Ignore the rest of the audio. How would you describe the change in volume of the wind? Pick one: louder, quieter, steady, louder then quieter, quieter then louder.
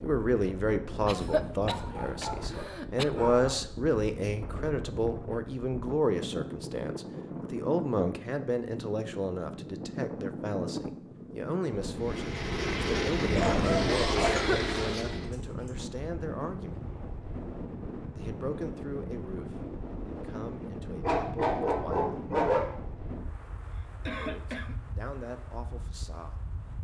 louder then quieter.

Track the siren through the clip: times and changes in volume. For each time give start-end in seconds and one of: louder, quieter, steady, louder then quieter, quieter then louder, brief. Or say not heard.
not heard.